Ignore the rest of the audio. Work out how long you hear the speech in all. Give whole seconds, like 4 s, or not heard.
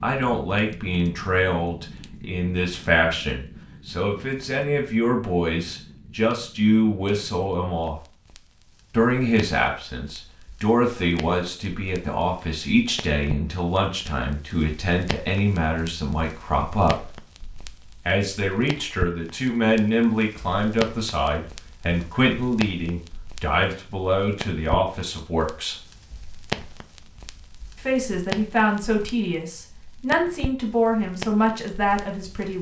29 s.